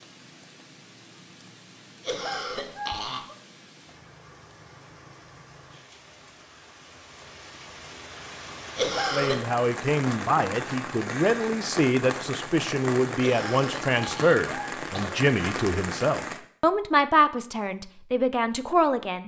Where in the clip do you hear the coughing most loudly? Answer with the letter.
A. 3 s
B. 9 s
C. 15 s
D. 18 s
B.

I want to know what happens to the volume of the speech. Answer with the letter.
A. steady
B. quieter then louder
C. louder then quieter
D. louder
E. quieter
A.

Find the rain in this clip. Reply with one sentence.
You can hear the rain from 0.0 to 16.4 s.